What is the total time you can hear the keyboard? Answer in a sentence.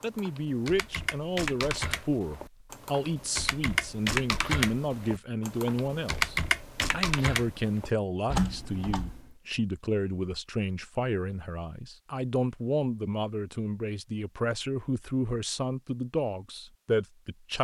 The keyboard can be heard for 9 seconds in total.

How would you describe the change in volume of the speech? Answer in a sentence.
The loudness of the speech stays about the same.